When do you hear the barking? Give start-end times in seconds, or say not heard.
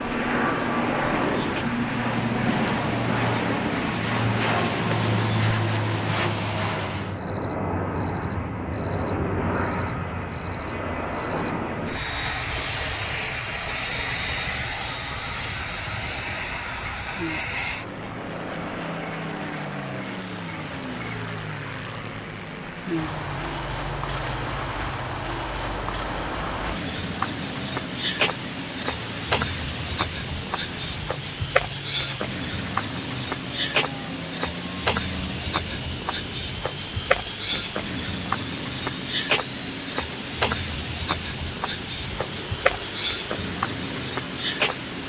not heard.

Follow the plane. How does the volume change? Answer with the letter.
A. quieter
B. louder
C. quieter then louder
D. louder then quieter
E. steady
A.